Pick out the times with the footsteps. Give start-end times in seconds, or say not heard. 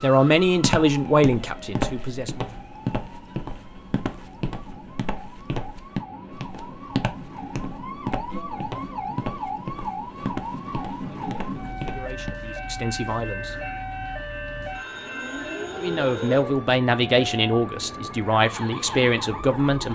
0.5-12.3.